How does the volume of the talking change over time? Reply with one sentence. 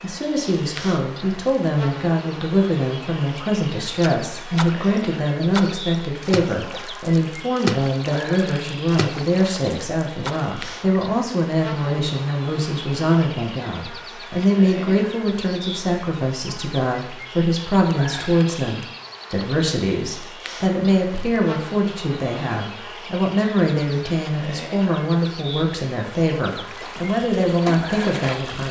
The loudness of the talking stays about the same.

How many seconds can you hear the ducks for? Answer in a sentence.
The ducks can't be heard in this clip.